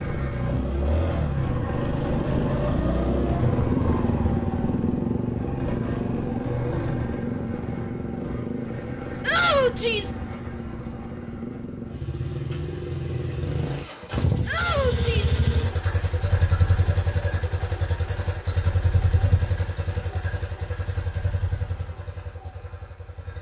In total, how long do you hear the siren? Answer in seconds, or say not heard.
not heard.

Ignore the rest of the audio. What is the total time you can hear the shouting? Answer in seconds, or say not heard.
2 s.